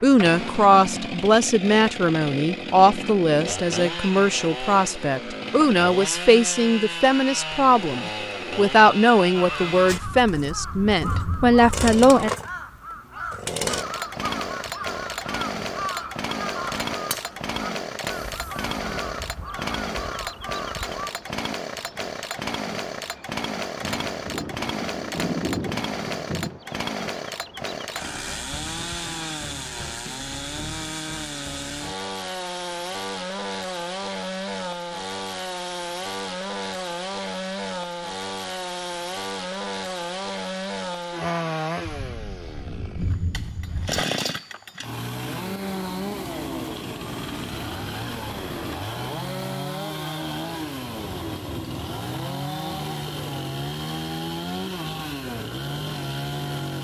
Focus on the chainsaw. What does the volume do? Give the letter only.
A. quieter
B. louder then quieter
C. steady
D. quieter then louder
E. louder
C.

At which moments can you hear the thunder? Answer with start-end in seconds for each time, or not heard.
9.9-11.8, 23.8-26.6, 41.9-44.0.